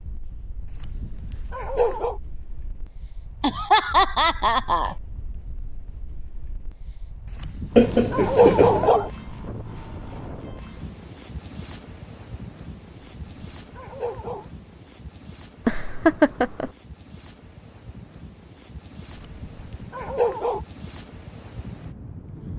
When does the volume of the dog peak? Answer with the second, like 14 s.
9 s.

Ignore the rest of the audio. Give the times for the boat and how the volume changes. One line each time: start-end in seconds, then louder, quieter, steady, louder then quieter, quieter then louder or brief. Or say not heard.
not heard.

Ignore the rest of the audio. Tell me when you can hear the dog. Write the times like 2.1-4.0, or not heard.
0.7-2.2, 7.2-9.1, 12.9-14.4, 19.1-20.6.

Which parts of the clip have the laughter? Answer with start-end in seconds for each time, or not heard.
3.4-5.0, 7.8-8.9, 15.7-16.7.